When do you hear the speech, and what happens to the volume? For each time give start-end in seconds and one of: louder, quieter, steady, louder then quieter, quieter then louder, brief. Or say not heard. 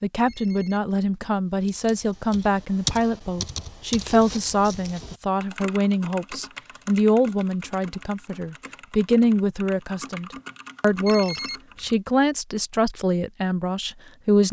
0.0-14.4 steady.